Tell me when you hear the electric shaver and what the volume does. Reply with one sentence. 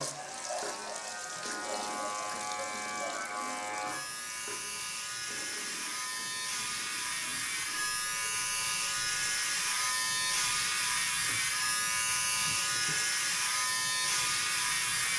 You can hear the electric shaver from 0.0 to 15.1 s, getting louder.